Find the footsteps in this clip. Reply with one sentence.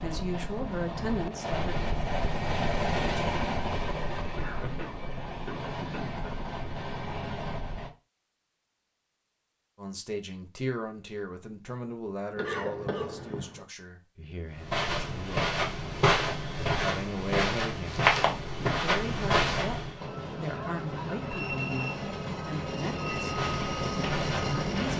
The footsteps can be heard from 14.6 to 20.1 s and from 23.2 to 24.9 s.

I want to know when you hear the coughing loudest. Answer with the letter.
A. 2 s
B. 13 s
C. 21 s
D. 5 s
B.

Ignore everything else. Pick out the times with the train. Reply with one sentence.
The train can be heard from 0.0 to 8.0 s and from 19.9 to 24.9 s.